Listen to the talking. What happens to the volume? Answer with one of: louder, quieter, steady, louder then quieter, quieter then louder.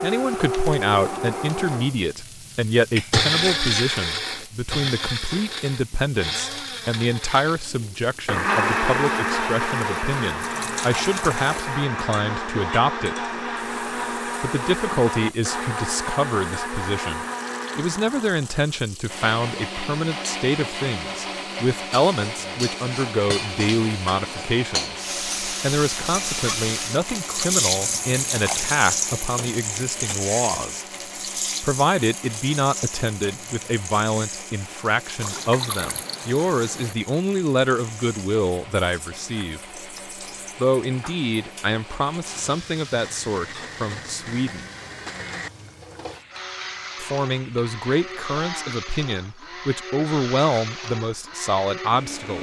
steady.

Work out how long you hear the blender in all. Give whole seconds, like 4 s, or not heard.
52 s.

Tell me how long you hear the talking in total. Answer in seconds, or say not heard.
47 s.